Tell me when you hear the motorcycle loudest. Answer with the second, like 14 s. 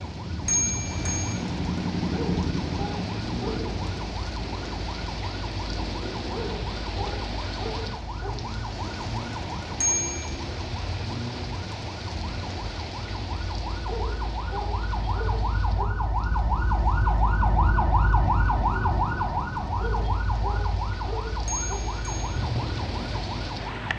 2 s.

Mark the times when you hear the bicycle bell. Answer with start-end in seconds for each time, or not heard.
0.5-1.4, 9.8-10.3, 21.4-22.4.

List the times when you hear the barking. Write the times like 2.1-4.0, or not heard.
2.1-3.6, 6.3-8.3, 13.8-15.8, 19.8-21.8.